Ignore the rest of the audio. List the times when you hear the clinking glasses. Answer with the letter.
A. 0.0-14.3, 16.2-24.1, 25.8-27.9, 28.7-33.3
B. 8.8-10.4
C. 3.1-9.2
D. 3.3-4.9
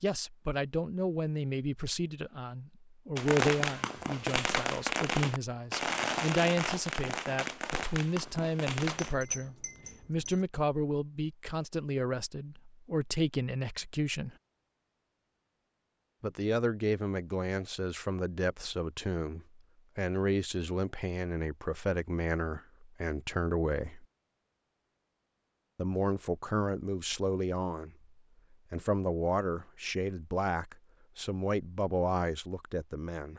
B.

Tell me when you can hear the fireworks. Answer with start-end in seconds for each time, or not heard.
3.1-9.2.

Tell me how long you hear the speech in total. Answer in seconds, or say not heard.
29 s.